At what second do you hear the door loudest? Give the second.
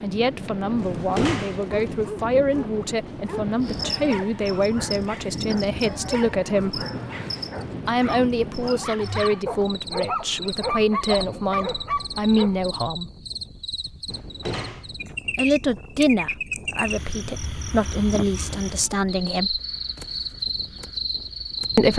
1 s.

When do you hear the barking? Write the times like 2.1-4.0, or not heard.
0.8-12.6.